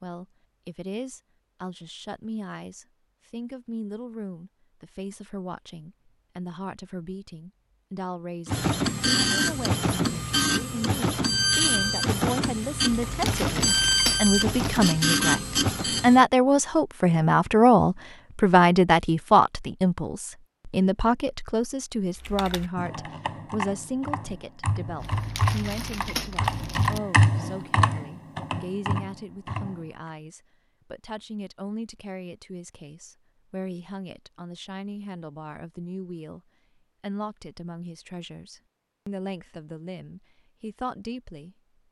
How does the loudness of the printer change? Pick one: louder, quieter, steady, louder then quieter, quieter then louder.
steady.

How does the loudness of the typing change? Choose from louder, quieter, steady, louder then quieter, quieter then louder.
louder then quieter.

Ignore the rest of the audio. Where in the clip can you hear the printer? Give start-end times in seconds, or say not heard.
8.4-16.2.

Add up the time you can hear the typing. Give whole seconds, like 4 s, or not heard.
8 s.